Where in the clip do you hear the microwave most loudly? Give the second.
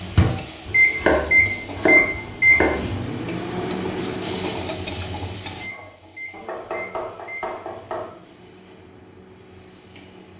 2 s.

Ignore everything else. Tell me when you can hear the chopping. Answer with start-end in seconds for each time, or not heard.
0.7-3.0, 6.3-8.1.